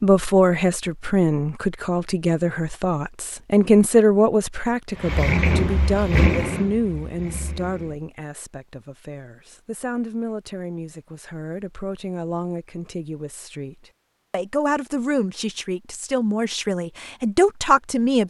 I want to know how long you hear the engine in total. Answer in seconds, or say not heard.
3 s.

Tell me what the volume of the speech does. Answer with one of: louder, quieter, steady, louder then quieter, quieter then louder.
quieter then louder.